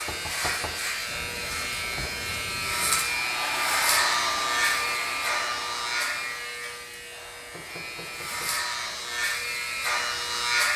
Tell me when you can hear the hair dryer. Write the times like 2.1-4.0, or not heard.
3.0-6.5.